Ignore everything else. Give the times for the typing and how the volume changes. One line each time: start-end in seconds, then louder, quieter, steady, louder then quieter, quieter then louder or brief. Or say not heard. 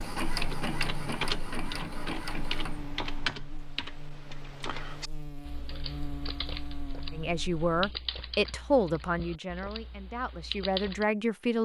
0.2-11.1 quieter.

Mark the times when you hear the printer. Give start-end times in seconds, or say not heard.
0.0-3.4.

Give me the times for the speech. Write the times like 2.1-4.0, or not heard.
7.1-11.6.